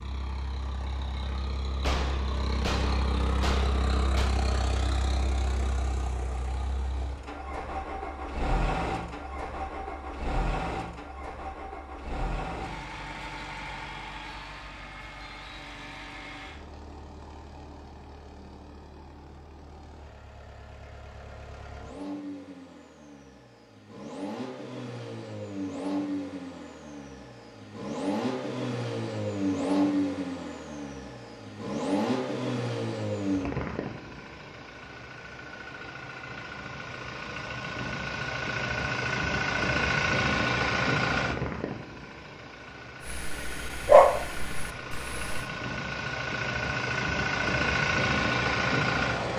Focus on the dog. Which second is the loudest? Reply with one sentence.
The volume of the dog peaks at 44 seconds.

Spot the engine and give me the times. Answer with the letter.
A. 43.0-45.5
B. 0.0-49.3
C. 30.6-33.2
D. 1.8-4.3
B.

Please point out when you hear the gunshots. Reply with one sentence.
The gunshots can be heard from 1.8 to 4.3 s.